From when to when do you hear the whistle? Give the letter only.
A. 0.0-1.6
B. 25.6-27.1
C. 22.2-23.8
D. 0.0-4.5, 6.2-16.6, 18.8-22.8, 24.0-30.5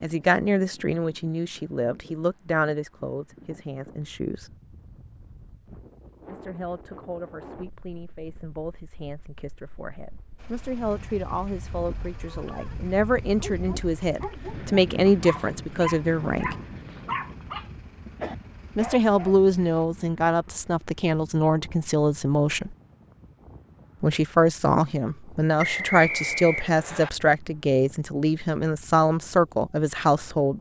B.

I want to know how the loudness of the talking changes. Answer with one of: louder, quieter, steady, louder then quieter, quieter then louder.
quieter then louder.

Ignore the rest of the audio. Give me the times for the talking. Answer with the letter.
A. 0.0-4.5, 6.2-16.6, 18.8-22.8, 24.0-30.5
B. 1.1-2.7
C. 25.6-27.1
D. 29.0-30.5
A.